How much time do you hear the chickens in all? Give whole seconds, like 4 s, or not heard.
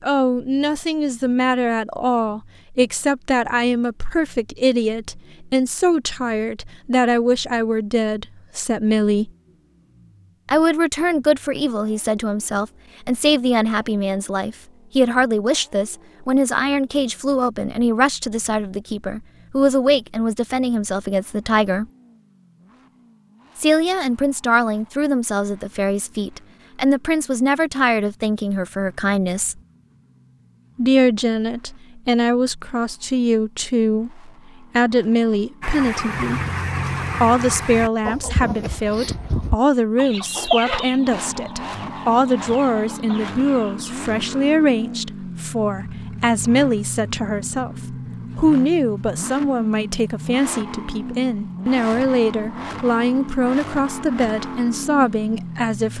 8 s.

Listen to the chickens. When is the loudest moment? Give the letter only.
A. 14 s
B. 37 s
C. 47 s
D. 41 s
D.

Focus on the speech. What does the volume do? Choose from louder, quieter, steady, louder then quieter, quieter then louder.
steady.